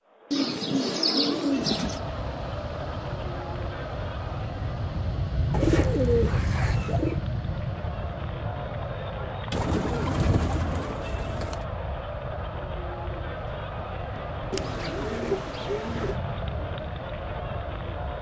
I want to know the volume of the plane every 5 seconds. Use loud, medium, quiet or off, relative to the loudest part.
medium, loud, medium, medium.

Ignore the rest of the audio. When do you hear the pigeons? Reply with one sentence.
You can hear the pigeons from 0.3 to 2.0 s, from 5.5 to 7.2 s, from 9.5 to 11.6 s and from 14.5 to 16.1 s.